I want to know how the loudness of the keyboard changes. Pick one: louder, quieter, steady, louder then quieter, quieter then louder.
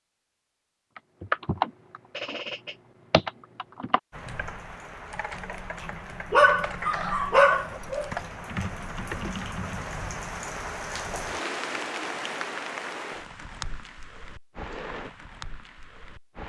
quieter then louder.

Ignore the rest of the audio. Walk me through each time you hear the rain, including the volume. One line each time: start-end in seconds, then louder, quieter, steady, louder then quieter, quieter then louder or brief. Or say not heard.
4.1-16.4 louder then quieter.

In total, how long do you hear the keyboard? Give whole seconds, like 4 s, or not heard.
9 s.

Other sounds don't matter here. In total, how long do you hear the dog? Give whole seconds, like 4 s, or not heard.
2 s.